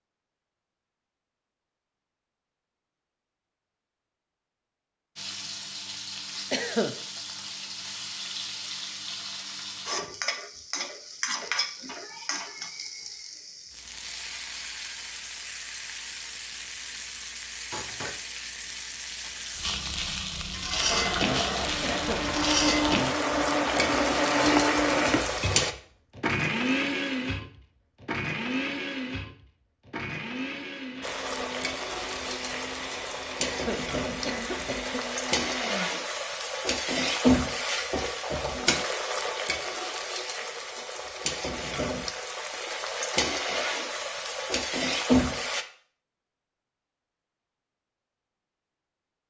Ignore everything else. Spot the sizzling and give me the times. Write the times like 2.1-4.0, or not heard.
5.2-25.8, 31.0-45.6.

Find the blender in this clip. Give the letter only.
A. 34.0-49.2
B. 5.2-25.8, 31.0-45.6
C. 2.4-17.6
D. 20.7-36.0
D.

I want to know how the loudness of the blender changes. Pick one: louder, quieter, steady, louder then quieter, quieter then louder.
quieter.